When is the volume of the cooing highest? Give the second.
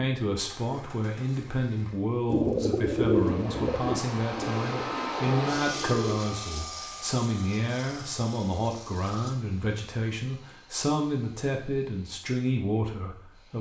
3 s.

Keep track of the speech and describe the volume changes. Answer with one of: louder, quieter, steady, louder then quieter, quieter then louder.
steady.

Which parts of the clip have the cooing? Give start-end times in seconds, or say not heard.
2.3-6.2.